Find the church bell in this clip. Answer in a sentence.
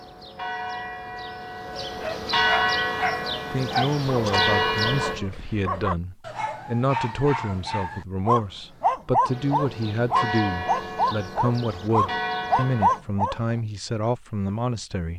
The church bell can be heard from 0.0 to 5.2 s and from 9.2 to 13.0 s.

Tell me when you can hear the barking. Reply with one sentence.
The barking can be heard from 1.9 to 13.4 s.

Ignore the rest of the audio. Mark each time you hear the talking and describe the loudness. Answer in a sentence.
You can hear the talking from 3.5 to 15.1 s, at a steady volume.